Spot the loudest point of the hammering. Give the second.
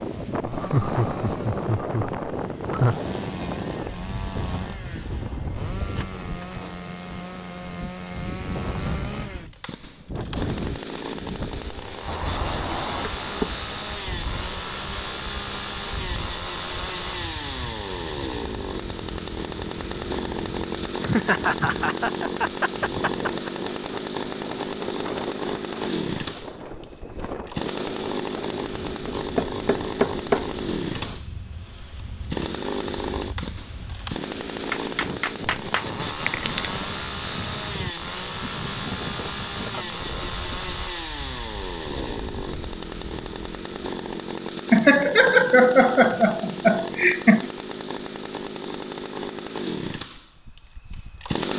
30 s.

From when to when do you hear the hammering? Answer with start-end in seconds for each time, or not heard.
12.1-13.7, 29.1-30.5, 34.7-36.7.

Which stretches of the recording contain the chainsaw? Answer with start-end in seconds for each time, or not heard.
0.0-51.5.